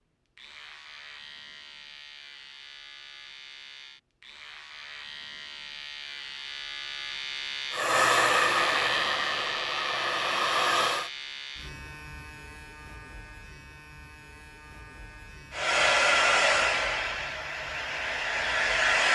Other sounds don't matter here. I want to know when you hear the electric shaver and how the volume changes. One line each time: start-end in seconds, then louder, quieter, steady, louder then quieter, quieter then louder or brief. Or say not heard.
0.3-18.9 louder then quieter.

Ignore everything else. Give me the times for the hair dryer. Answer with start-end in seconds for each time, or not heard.
7.7-11.1, 15.5-19.0.